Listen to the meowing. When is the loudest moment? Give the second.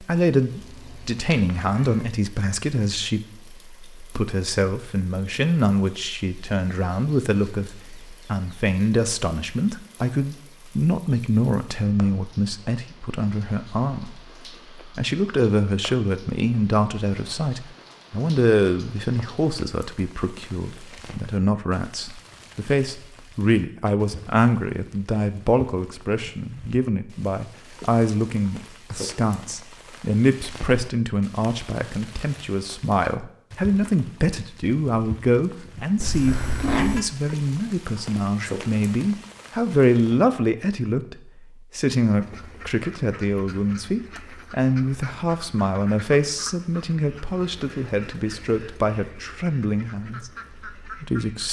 37 s.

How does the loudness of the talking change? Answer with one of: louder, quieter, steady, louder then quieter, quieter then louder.
steady.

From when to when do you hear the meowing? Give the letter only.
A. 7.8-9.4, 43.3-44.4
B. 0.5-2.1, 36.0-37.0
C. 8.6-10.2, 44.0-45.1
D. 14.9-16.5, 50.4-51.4
B.